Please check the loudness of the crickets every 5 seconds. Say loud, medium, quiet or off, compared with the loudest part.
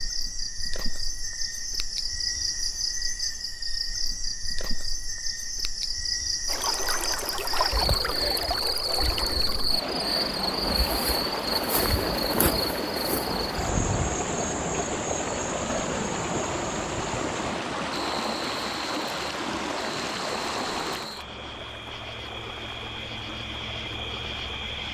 loud, loud, loud, medium, medium.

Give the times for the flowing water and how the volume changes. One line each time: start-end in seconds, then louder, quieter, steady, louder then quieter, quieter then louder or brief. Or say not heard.
6.5-24.8 quieter.